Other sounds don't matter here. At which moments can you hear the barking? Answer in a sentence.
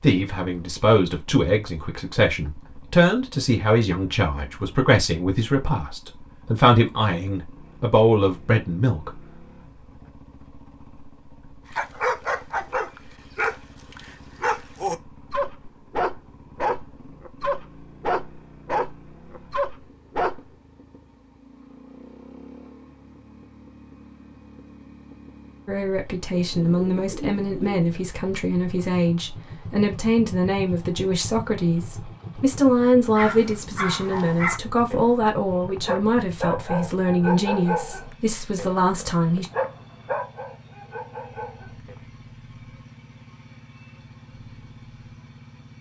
You can hear the barking from 11.7 to 20.4 s and from 33.1 to 42.0 s.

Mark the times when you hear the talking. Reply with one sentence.
The talking can be heard from 0.0 to 9.1 s and from 25.6 to 39.5 s.